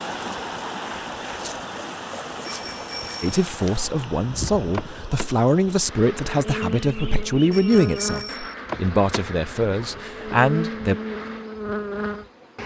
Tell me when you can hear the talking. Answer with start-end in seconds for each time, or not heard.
3.2-10.9.